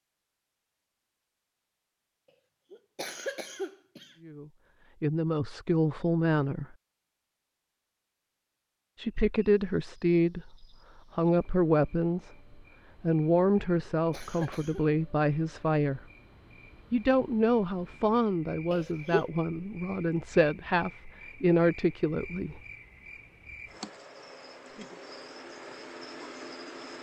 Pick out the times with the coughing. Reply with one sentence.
The coughing can be heard from 2.7 to 4.2 s, from 13.8 to 14.8 s and from 18.7 to 19.3 s.